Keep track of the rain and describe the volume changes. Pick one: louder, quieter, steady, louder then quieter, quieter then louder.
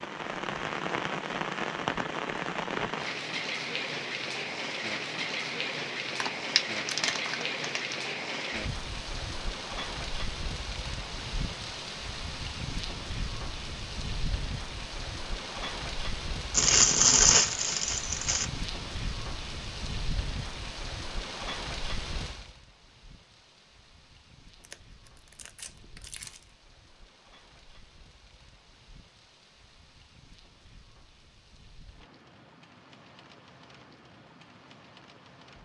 quieter.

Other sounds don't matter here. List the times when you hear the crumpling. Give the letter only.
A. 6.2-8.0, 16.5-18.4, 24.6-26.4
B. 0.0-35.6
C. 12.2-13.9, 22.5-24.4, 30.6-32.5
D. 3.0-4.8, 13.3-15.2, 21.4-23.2
A.